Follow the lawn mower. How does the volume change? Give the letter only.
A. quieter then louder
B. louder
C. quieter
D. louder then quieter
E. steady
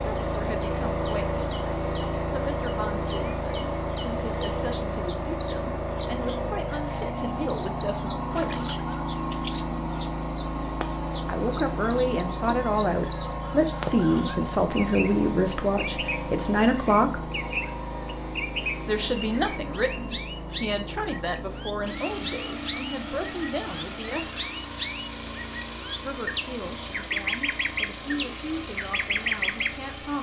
C.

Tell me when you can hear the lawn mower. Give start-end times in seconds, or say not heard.
0.0-30.1.